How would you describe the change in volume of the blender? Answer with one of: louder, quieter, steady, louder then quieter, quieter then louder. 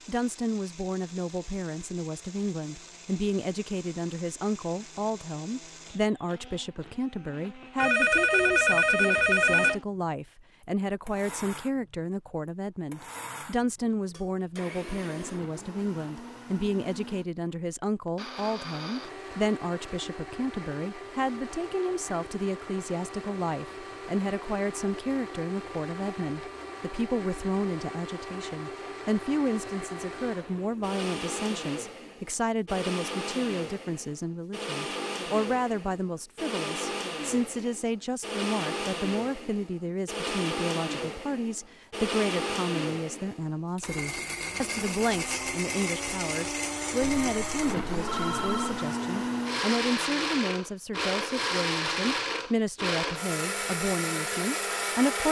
louder.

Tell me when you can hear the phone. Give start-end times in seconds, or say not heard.
7.8-9.8, 47.0-48.9.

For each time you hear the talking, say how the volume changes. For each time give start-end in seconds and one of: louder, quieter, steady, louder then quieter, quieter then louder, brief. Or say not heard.
0.1-55.2 steady.